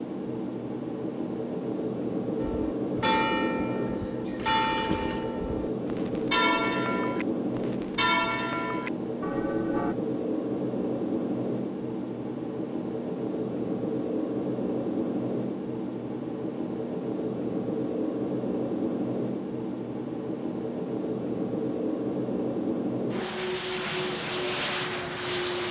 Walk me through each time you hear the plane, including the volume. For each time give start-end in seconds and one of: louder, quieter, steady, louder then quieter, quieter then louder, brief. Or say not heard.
0.0-25.6 steady.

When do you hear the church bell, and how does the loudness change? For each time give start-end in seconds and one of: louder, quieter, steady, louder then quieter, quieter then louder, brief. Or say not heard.
2.4-9.9 steady.